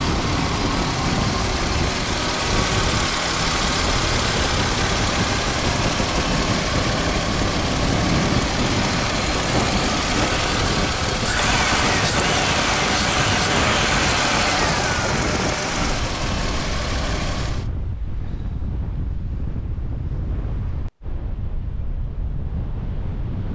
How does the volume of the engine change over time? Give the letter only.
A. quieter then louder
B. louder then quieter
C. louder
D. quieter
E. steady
E.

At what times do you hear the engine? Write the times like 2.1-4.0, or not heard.
0.0-17.7.